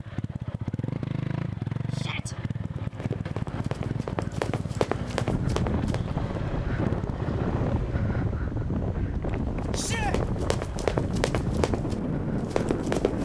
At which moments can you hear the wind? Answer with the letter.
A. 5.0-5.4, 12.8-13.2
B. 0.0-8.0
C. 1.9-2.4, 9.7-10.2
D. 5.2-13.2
D.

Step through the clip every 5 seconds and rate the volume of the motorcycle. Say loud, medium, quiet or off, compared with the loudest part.
loud, loud, medium.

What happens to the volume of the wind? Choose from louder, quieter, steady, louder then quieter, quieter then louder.
steady.